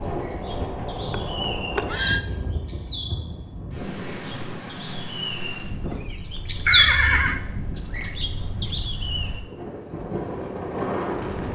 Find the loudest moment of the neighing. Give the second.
7 s.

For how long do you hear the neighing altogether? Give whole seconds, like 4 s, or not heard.
2 s.